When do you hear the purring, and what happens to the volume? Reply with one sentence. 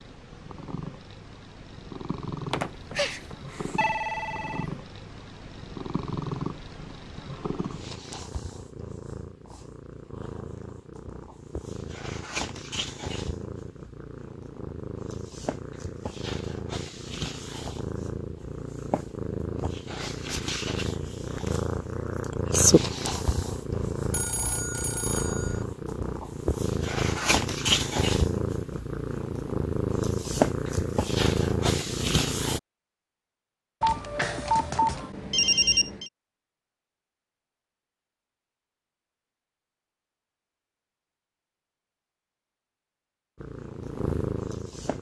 The purring can be heard from 0.0 to 32.6 s, getting louder; and briefly from 43.4 to 44.9 s.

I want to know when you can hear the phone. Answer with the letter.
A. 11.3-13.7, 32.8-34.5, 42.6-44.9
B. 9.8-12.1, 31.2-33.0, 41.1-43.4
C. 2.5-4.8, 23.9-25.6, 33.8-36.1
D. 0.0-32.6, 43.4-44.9
C.